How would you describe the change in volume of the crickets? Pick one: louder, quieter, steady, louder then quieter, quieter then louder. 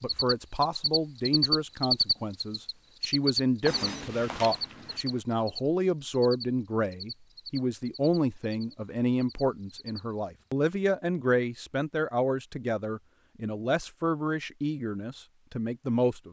quieter.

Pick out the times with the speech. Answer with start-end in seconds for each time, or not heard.
0.0-16.2.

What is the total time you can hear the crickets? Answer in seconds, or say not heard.
10 s.